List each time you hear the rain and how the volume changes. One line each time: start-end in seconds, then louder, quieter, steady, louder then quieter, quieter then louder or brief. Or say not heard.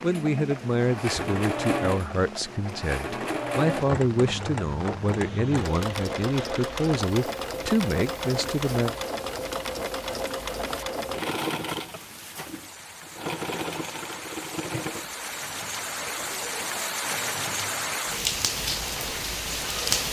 0.0-20.0 louder.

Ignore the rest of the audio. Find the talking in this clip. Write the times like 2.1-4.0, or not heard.
0.0-8.9.